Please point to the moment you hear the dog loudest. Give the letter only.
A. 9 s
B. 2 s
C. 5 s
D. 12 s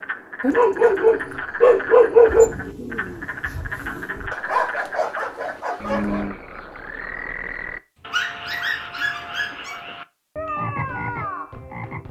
B.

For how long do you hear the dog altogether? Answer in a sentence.
You can hear the dog for 6 seconds altogether.